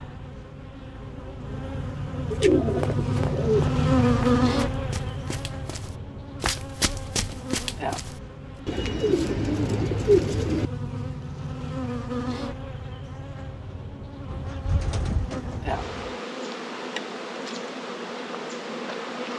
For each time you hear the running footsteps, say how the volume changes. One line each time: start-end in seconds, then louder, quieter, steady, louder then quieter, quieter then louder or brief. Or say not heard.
2.4-8.2 quieter then louder.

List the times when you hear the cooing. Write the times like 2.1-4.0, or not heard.
2.3-3.7, 8.7-10.7, 14.2-16.1.